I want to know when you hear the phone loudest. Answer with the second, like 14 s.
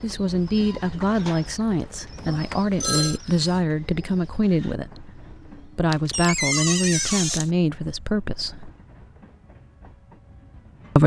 3 s.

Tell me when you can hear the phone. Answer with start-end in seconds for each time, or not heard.
2.1-3.2, 5.9-6.8.